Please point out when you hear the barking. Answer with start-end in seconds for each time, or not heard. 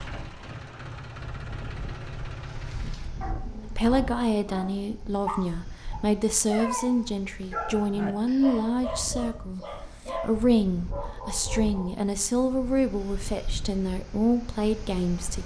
2.5-12.1.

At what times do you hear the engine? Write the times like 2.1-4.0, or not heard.
0.0-3.2.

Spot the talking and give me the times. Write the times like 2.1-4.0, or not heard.
3.6-15.4.